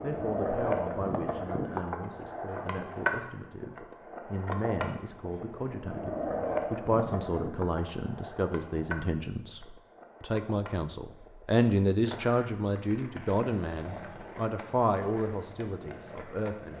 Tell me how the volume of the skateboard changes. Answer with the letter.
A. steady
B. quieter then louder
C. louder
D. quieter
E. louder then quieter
D.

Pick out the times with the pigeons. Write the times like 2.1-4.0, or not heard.
not heard.